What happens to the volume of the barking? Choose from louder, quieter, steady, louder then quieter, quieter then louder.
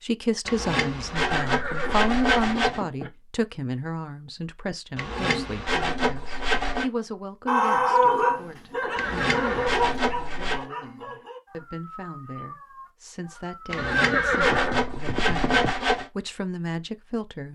quieter.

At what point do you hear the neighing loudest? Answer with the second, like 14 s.
14 s.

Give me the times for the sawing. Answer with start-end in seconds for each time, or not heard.
0.5-2.8, 5.0-6.8, 8.9-10.7, 13.7-16.1.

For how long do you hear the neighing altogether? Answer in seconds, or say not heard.
5 s.